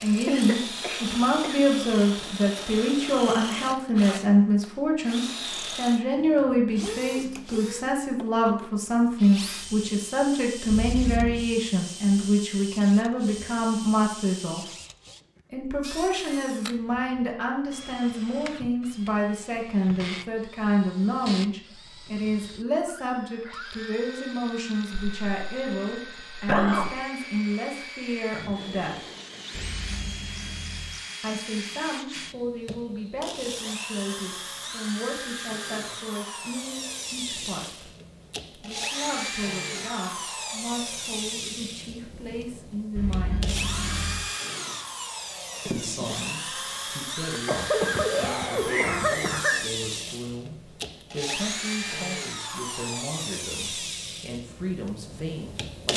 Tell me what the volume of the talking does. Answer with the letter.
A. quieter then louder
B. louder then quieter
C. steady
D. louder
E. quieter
E.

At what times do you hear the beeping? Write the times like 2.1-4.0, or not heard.
10.7-11.5, 29.5-31.0, 43.0-44.2.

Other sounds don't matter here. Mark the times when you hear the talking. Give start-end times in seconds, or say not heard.
0.0-14.7, 15.5-29.0, 31.2-37.9, 38.5-43.5, 45.6-55.9.